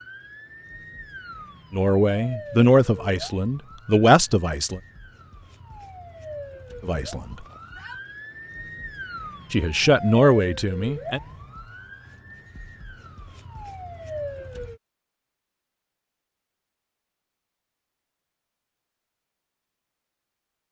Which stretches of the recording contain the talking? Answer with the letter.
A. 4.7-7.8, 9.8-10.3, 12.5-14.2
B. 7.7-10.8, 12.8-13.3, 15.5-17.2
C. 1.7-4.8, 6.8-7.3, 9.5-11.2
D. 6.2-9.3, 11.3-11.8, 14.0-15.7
C.